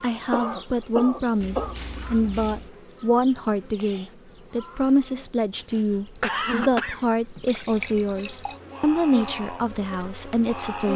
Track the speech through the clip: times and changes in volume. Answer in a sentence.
You can hear the speech from 0.0 to 10.9 s, at a steady volume.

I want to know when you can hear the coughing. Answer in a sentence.
You can hear the coughing from 0.3 to 1.8 s and from 5.5 to 7.0 s.